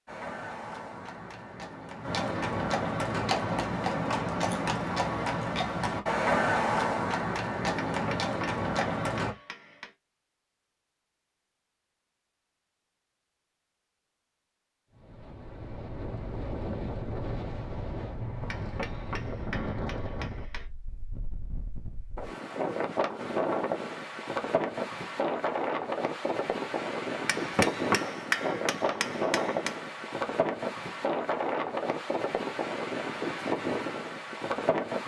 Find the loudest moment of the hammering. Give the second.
28 s.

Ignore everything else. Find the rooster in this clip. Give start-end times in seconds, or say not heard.
not heard.